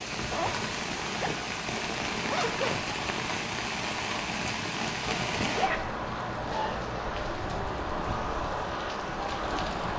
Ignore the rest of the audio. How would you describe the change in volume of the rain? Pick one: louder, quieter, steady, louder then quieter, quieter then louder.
steady.